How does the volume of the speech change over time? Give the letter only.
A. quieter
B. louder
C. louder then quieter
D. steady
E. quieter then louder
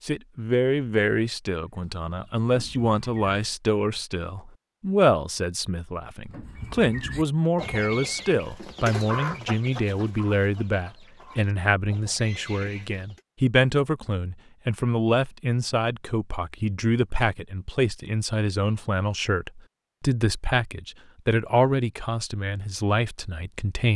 D.